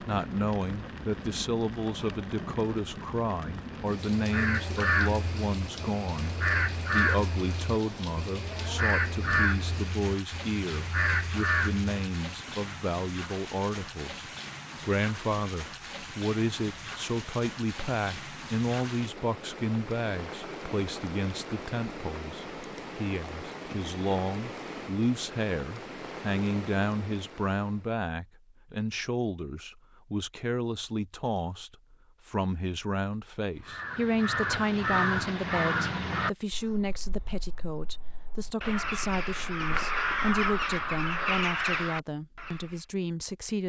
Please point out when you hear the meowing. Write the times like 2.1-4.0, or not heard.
not heard.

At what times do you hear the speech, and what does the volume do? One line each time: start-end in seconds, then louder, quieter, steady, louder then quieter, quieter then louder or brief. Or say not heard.
0.0-43.6 steady.